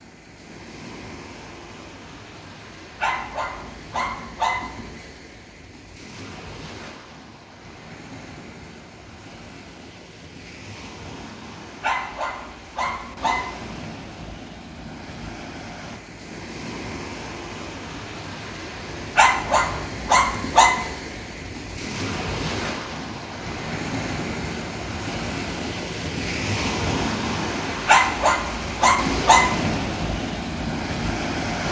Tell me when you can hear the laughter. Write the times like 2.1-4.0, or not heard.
not heard.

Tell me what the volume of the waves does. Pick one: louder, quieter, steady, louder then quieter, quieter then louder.
louder.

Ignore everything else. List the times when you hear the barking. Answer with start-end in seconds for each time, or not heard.
3.0-5.0, 11.8-13.8, 19.1-20.8, 27.9-29.7.